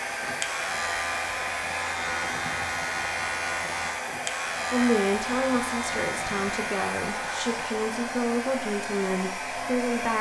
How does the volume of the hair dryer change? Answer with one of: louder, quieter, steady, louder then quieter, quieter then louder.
steady.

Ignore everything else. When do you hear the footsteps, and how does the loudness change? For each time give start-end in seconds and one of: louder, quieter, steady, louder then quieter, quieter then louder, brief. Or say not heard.
not heard.